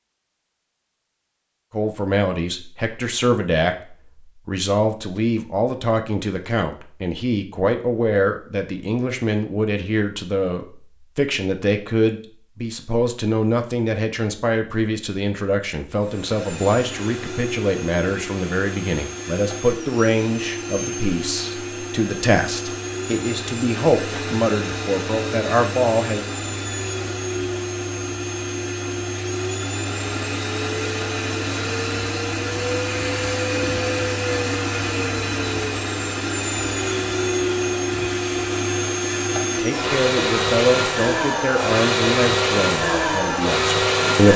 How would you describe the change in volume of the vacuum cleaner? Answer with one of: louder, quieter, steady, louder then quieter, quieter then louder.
louder.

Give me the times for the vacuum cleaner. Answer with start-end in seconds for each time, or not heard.
15.9-44.3.